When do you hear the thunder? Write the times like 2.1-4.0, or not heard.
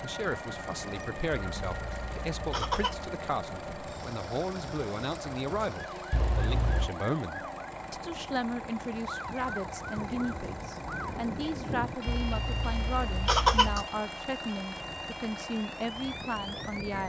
9.9-11.9.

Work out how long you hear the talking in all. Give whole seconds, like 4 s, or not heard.
17 s.